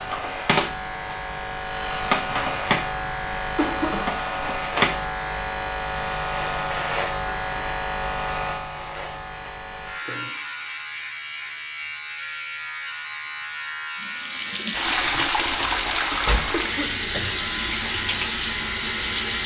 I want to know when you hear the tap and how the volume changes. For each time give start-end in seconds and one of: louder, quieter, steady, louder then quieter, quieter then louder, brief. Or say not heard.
14.0-19.4 steady.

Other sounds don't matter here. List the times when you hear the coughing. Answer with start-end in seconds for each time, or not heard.
2.3-4.0, 16.5-17.4.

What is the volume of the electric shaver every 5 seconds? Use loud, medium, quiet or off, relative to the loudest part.
loud, loud, medium, medium.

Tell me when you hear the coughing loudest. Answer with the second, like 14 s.
4 s.